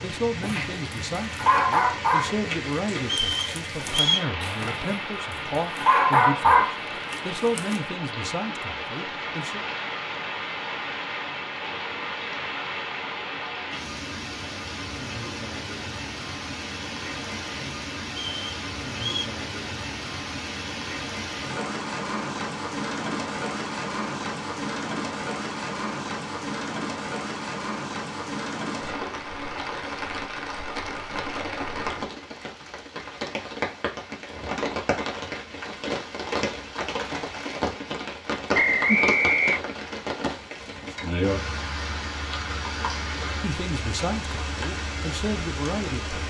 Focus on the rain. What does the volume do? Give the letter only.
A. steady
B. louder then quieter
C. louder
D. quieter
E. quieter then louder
A.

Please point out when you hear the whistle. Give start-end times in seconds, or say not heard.
3.0-4.3, 18.2-19.3, 38.5-39.6.